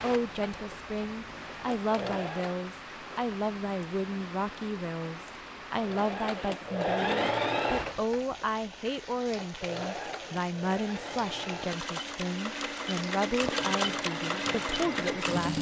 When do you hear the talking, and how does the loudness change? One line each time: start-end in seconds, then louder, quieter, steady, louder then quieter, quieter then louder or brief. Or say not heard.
0.0-15.5 steady.